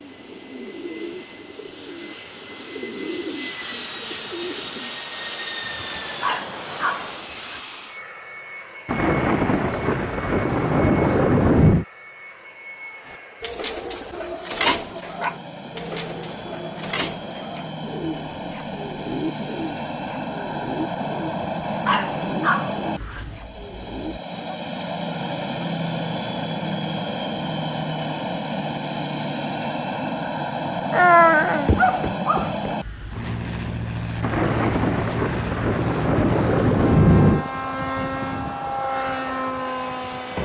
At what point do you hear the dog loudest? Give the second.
31 s.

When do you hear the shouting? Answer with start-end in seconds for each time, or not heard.
not heard.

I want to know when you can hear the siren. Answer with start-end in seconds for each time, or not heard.
not heard.